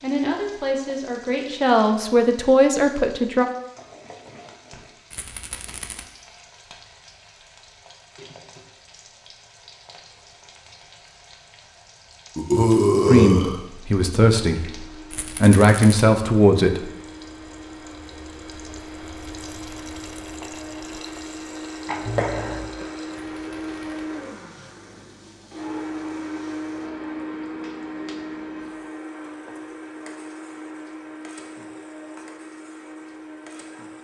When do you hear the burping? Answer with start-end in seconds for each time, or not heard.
12.3-13.6, 21.9-22.9.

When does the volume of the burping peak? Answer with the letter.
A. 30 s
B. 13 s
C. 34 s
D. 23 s
B.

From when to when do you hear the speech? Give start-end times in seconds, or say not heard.
0.0-3.5, 13.1-16.9.